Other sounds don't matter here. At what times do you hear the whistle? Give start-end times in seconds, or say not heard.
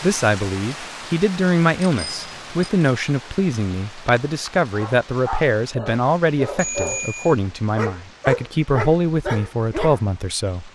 not heard.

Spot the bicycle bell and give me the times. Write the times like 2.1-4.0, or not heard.
1.8-2.7, 6.5-7.3.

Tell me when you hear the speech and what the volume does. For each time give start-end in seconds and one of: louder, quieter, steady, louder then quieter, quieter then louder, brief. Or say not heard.
0.0-10.6 steady.